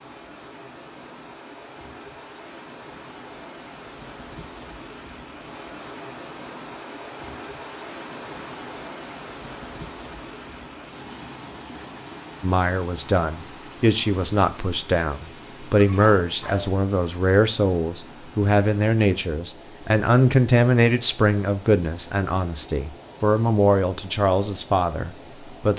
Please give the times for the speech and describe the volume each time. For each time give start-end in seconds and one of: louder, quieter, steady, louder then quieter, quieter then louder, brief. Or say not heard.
12.4-25.7 steady.